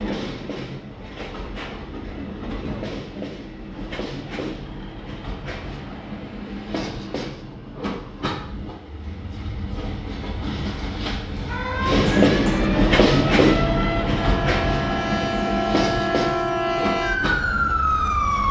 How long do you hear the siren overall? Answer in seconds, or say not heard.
7 s.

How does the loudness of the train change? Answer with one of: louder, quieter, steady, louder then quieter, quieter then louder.
louder then quieter.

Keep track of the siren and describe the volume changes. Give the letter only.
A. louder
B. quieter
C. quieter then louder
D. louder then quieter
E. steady
A.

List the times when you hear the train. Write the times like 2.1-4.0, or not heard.
0.0-18.4.